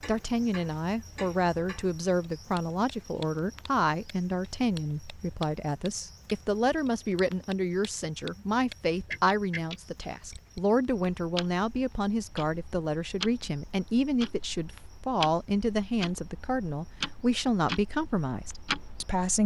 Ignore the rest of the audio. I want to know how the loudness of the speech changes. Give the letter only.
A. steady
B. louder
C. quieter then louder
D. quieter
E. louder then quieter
A.